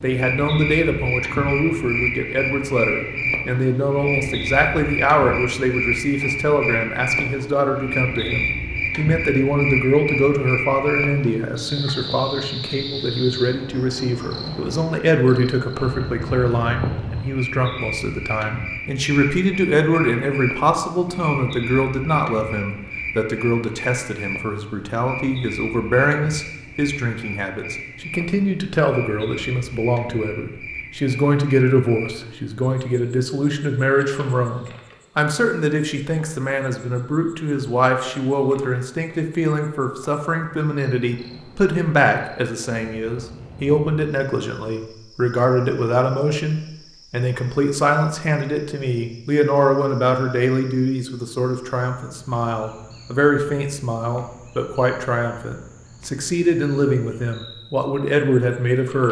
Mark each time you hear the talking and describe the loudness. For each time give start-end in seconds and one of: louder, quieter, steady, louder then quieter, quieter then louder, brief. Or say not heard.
0.0-59.0 steady.